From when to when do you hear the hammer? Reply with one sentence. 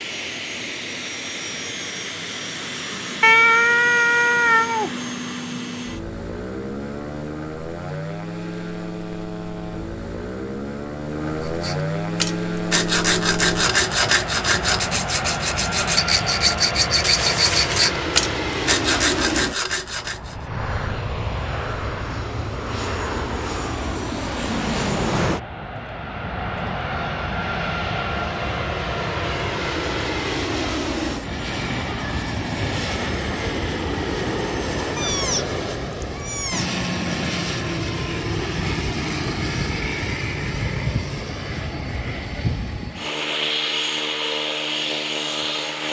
You can't hear the hammer here.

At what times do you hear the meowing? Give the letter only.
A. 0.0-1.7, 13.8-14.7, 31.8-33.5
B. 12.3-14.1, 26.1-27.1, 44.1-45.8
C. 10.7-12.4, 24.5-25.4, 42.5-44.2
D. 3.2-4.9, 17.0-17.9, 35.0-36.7
D.